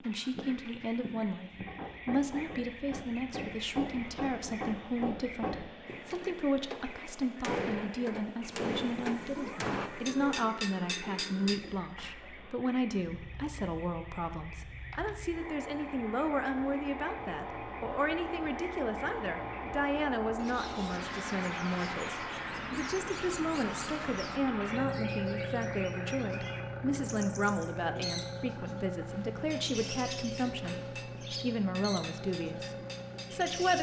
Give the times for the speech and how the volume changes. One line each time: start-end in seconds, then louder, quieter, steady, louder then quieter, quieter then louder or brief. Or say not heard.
0.0-33.7 steady.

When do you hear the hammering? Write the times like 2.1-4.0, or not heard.
1.5-11.8, 29.4-33.5.